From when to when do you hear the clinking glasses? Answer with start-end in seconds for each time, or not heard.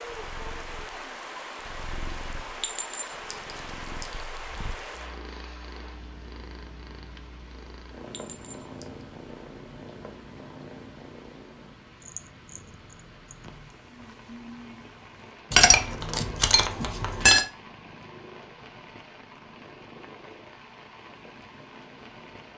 2.6-4.2, 8.1-8.8, 15.5-17.4.